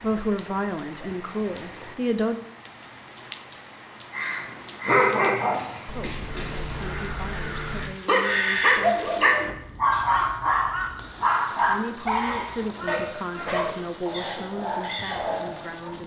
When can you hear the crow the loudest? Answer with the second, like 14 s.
9 s.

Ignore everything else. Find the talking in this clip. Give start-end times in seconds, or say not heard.
0.0-2.4, 5.9-9.2, 11.6-16.0.